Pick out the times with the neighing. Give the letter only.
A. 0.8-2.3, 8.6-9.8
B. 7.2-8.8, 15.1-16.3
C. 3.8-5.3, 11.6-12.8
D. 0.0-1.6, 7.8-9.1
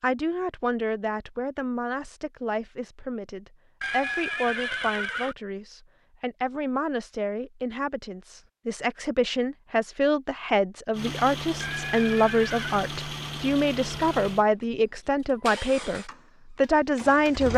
C.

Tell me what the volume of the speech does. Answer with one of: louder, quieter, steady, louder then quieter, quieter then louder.
louder.